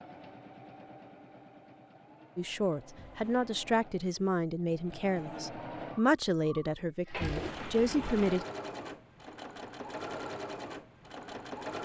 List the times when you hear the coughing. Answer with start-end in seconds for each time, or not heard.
not heard.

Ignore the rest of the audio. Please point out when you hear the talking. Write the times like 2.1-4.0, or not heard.
2.4-8.4.